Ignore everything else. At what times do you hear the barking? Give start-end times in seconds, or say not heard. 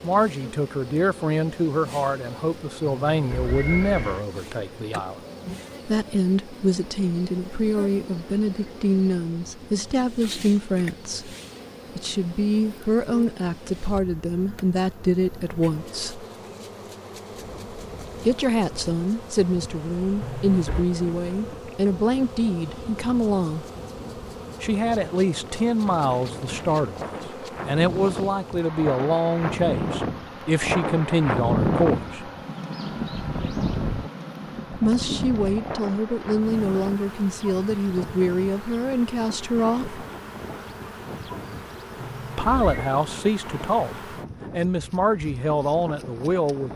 not heard.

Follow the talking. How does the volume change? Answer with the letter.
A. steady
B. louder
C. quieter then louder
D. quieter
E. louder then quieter
A.